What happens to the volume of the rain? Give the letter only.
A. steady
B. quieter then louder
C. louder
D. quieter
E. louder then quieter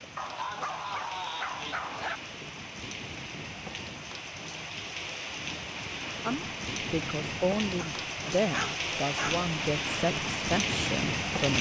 C.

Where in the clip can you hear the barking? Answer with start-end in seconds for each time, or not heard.
0.1-2.2, 7.8-9.4.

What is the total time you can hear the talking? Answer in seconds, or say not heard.
5 s.